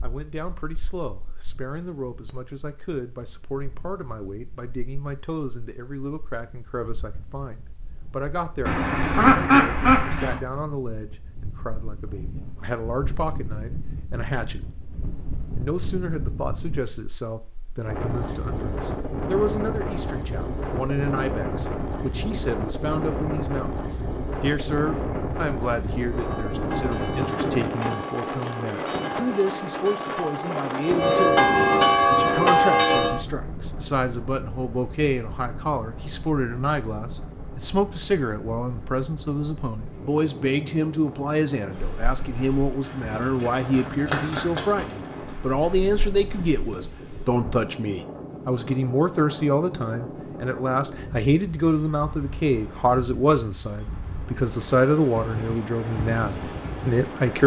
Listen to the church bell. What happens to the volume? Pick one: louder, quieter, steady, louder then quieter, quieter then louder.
louder.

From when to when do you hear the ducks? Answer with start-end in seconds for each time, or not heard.
8.7-10.4.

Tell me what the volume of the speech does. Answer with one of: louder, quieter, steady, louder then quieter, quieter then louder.
louder.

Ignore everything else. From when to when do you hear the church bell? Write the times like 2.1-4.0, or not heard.
26.1-33.2.